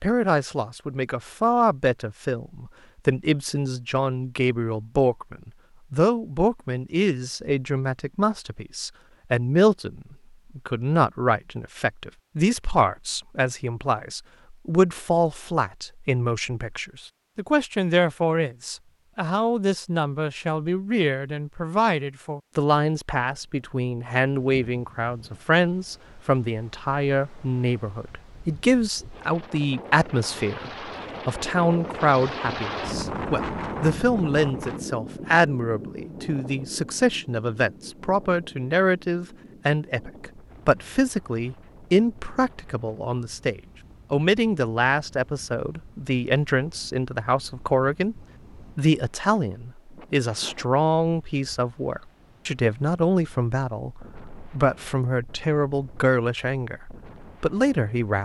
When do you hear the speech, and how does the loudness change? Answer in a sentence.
The speech can be heard from 0.0 to 58.2 s, at a steady volume.